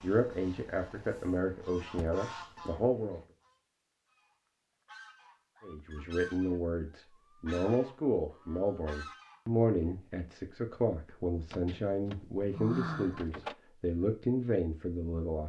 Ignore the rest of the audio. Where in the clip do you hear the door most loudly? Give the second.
13 s.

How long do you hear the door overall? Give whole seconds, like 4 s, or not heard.
3 s.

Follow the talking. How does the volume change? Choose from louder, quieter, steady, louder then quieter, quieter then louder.
steady.